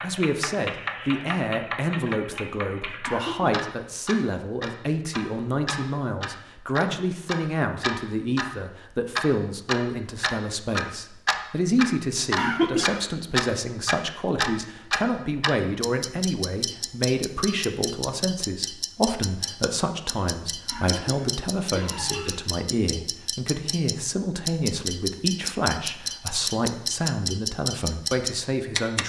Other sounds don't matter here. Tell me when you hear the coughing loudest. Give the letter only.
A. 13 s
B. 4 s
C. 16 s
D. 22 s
A.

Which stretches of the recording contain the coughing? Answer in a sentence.
You can hear the coughing from 3.0 to 3.6 s, from 12.3 to 13.0 s and from 20.6 to 22.4 s.